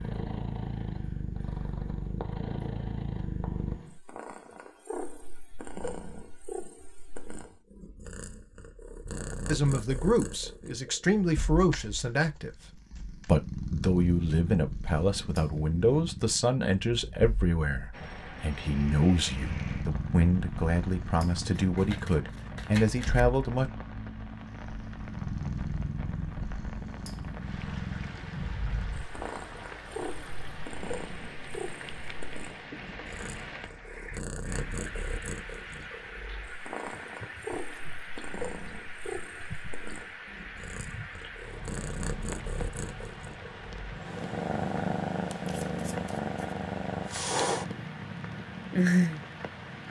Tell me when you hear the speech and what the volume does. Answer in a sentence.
The speech can be heard from 9.4 to 23.7 s, at a steady volume.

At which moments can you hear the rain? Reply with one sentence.
The rain can be heard from 17.9 to 49.8 s.